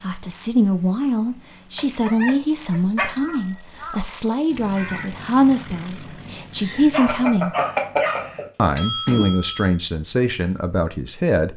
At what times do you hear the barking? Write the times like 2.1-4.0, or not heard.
1.8-3.3, 6.9-8.3.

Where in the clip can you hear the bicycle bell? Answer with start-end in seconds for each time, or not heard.
3.0-3.6, 7.0-9.7.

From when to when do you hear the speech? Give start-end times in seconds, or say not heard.
0.0-7.5, 8.6-11.5.